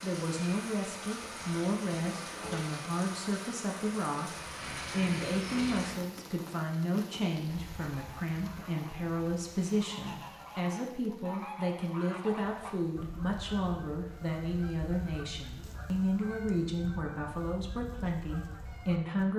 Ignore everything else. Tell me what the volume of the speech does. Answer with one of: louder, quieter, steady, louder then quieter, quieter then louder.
steady.